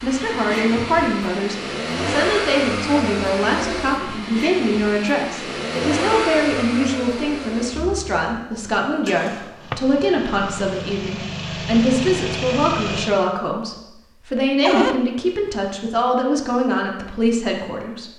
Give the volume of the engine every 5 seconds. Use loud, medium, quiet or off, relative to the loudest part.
loud, loud, loud, off.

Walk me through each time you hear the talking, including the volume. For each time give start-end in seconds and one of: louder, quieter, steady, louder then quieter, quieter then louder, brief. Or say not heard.
0.0-18.1 steady.